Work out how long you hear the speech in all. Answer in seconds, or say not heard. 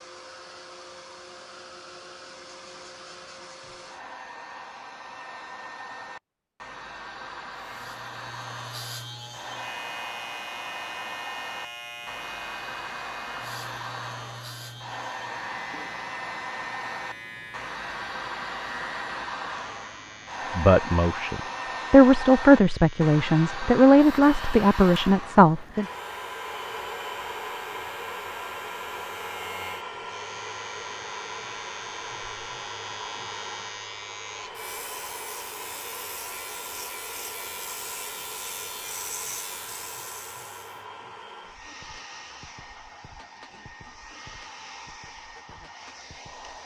5 s.